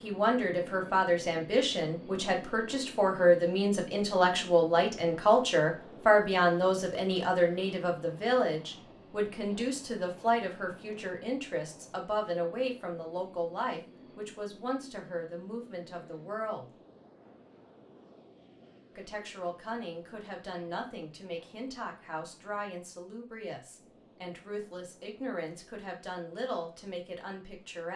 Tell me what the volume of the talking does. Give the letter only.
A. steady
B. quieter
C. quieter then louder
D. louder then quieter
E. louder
B.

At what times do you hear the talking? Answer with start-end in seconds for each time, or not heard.
0.0-16.7, 18.9-27.9.